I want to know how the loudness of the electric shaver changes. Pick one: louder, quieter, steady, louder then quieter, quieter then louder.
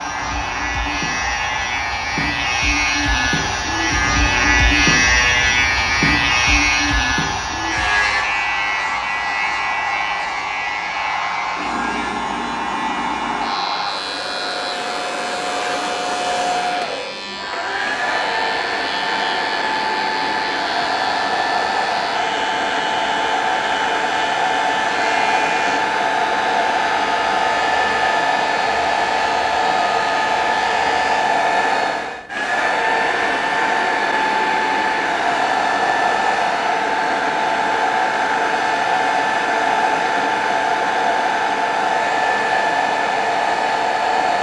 quieter.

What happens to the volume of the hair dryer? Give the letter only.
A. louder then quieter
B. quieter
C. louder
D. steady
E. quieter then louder
C.